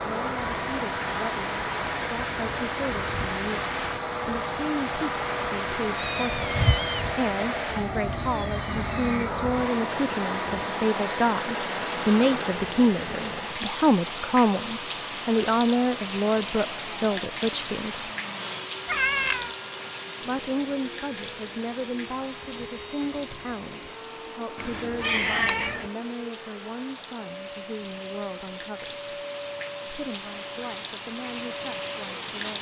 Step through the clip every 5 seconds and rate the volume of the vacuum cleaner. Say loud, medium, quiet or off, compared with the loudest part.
loud, loud, loud, medium, medium, medium, medium.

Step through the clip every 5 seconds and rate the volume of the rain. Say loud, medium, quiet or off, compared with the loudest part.
loud, loud, loud, loud, medium, medium, loud.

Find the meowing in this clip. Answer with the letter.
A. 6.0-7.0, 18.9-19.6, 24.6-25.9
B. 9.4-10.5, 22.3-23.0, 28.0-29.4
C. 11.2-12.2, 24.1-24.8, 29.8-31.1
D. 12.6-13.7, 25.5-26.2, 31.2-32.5
A.